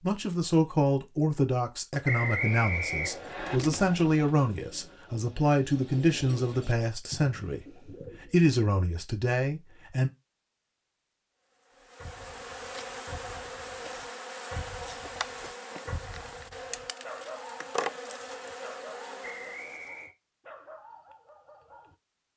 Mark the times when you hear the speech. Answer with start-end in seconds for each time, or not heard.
0.0-10.1.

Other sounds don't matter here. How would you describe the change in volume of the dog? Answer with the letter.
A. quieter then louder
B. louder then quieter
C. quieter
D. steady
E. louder
B.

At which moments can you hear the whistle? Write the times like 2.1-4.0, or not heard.
2.0-3.6, 19.2-20.1.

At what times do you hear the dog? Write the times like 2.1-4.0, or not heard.
11.8-21.9.